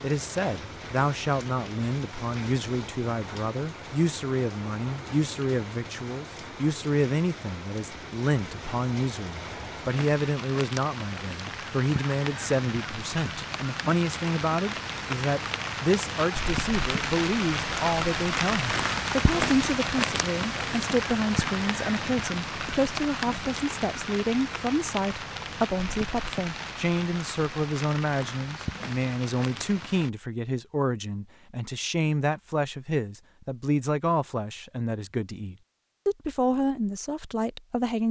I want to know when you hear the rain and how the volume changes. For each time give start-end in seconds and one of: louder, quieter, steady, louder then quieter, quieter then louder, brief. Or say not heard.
0.0-30.1 louder then quieter.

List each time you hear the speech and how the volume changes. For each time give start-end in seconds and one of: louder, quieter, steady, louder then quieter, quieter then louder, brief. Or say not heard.
0.0-38.0 steady.